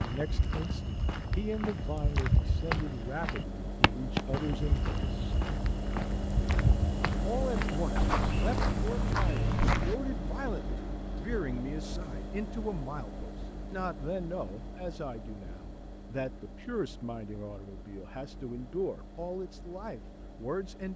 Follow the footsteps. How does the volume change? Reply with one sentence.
The volume of the footsteps goes up.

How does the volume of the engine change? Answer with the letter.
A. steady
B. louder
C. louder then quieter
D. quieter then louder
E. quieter
C.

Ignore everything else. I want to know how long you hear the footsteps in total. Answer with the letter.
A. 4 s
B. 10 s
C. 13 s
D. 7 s
B.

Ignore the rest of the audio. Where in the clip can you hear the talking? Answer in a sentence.
The talking can be heard from 0.0 to 5.4 s and from 7.2 to 20.9 s.